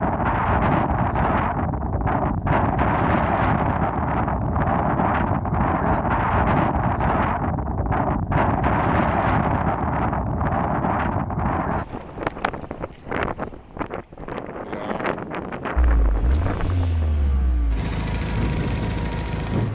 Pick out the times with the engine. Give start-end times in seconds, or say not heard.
15.8-19.7.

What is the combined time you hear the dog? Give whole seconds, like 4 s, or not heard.
not heard.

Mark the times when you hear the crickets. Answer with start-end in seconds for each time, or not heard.
not heard.